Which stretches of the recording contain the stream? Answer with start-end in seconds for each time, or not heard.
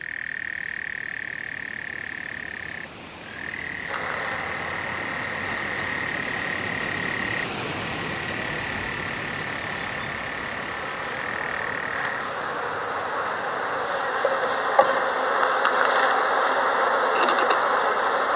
0.0-18.3.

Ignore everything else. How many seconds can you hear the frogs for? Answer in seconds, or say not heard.
12 s.